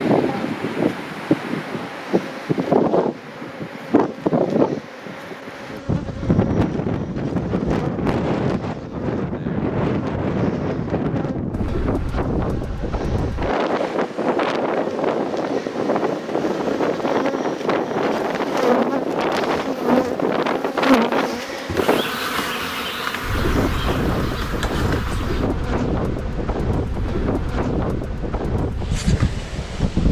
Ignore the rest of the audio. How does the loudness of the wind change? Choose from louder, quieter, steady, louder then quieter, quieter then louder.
steady.